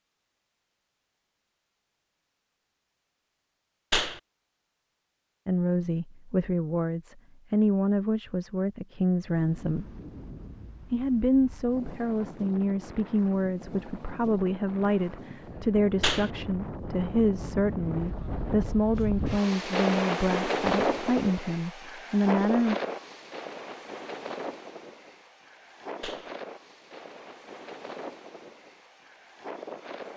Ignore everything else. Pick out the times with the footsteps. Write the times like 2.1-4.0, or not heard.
not heard.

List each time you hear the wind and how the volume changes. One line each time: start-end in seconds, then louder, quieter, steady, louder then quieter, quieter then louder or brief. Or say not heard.
9.2-30.1 louder then quieter.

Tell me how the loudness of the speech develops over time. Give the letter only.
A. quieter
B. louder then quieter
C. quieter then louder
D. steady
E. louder
D.